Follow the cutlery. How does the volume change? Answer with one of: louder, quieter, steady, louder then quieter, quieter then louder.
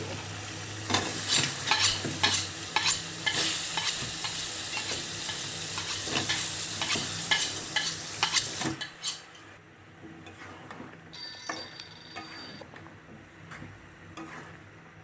quieter then louder.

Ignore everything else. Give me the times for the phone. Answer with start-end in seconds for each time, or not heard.
4.0-4.8, 11.1-12.7.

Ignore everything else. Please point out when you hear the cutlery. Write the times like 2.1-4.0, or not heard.
1.2-9.4.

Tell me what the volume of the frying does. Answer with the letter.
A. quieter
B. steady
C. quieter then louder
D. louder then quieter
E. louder
A.